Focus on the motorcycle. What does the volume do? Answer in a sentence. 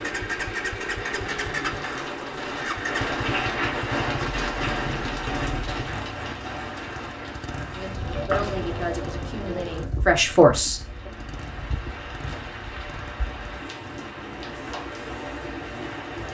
The loudness of the motorcycle goes down.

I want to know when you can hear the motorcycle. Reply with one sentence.
You can hear the motorcycle from 0.0 to 15.9 s.